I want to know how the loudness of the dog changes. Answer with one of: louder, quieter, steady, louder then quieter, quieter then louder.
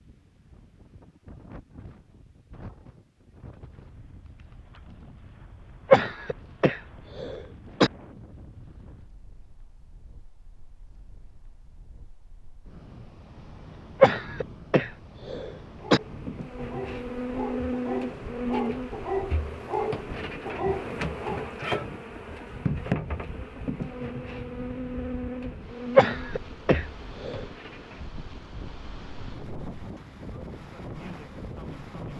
louder.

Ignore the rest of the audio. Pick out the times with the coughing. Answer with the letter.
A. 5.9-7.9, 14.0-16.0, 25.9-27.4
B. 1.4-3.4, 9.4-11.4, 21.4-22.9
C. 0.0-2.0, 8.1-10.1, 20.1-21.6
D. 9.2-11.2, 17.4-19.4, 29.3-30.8
A.